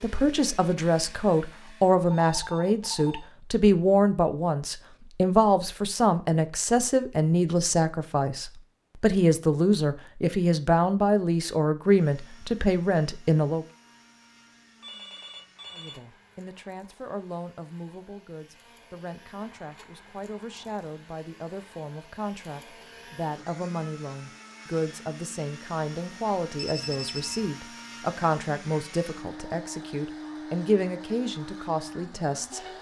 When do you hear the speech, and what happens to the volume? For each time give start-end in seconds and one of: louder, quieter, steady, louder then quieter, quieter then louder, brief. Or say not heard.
0.0-13.7 steady
15.7-32.6 louder.